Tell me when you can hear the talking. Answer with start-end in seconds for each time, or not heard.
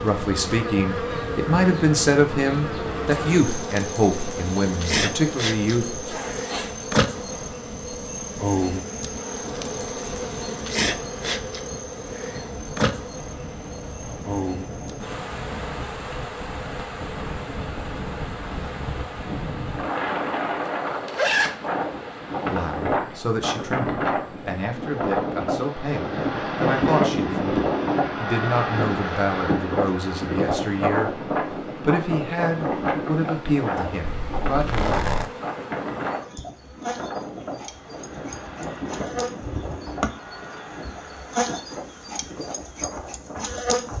0.0-6.0, 22.5-31.2, 31.8-35.0.